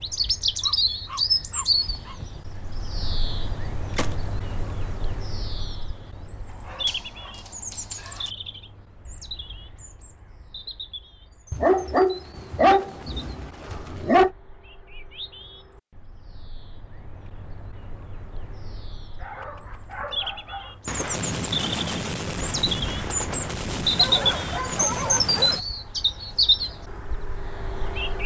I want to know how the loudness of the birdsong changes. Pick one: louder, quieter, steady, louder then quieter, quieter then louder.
quieter then louder.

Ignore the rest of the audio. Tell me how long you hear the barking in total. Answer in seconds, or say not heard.
9 s.